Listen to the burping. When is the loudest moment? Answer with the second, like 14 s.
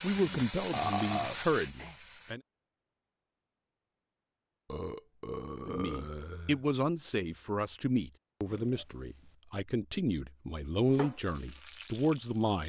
1 s.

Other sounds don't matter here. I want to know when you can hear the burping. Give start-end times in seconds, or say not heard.
0.7-1.9, 4.7-6.7, 8.4-9.3.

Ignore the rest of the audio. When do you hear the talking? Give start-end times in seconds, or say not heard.
0.0-2.4, 5.6-12.6.